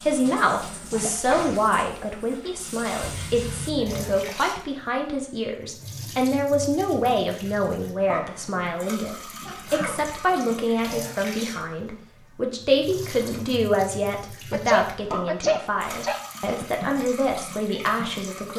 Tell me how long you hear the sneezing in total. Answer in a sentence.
The sneezing can be heard for 4 seconds in total.